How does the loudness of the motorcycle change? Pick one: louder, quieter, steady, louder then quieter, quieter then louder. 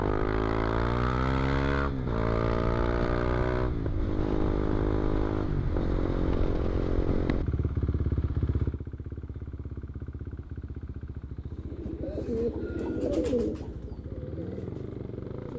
quieter.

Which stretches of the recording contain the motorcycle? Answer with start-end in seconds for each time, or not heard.
0.0-15.5.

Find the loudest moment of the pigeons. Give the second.
13 s.